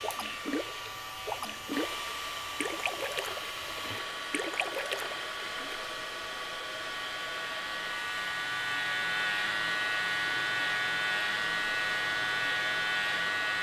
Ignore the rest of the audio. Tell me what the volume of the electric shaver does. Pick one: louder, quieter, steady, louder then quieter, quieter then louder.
louder.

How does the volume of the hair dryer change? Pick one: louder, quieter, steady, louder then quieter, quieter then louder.
steady.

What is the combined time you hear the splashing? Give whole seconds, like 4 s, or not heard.
6 s.